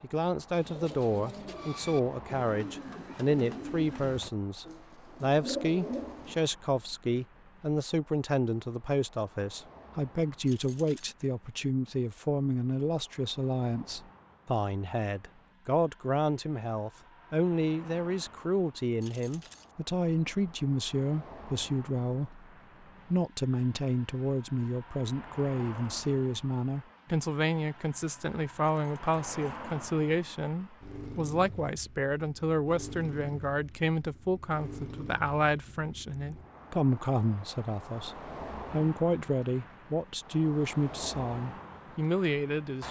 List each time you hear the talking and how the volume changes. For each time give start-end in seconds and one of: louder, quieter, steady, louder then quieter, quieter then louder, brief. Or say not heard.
0.0-22.4 steady
23.1-42.8 steady.